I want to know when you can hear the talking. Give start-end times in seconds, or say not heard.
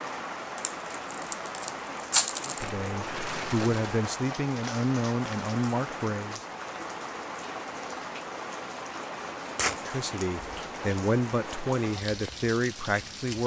2.4-6.4, 9.7-13.4.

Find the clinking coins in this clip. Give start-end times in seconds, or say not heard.
2.6-4.0.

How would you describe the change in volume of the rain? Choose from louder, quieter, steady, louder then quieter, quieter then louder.
steady.